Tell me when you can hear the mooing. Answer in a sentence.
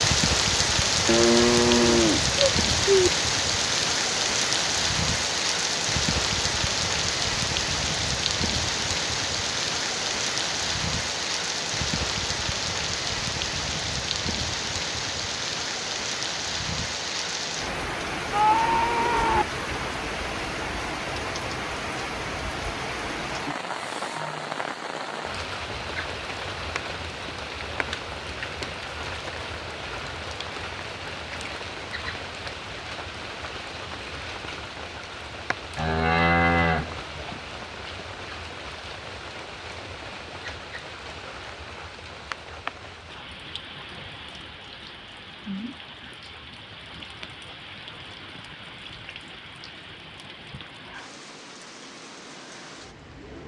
You can hear the mooing from 1.1 to 3.1 s, from 18.3 to 19.4 s and from 35.8 to 37.4 s.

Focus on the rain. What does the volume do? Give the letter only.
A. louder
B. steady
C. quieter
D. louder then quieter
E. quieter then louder
C.